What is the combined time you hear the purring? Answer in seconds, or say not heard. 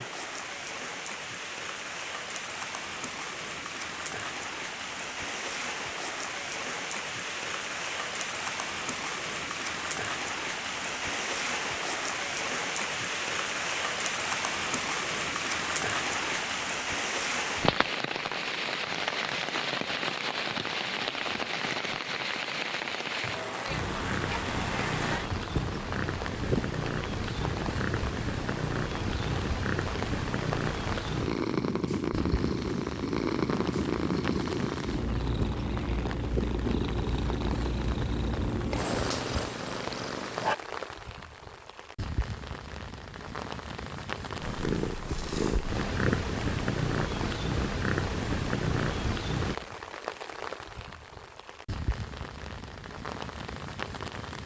22 s.